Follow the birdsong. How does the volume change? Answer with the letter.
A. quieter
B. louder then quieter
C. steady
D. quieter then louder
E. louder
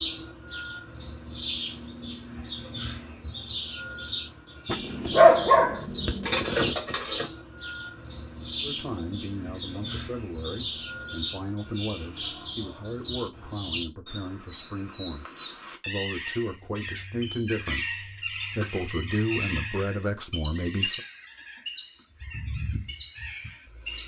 C.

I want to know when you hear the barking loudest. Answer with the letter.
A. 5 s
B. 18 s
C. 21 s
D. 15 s
A.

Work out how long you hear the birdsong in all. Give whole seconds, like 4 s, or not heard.
24 s.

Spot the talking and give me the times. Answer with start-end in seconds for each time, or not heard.
8.6-15.2, 15.8-21.0.